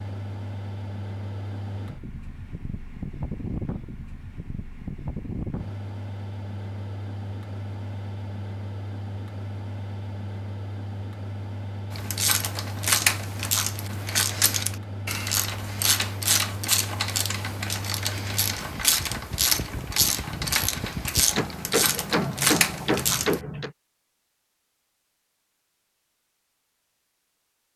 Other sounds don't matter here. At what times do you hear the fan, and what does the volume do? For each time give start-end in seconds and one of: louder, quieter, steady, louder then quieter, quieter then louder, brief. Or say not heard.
0.0-21.4 steady.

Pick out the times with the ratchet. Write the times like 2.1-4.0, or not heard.
11.9-23.4.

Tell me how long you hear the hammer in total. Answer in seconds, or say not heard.
2 s.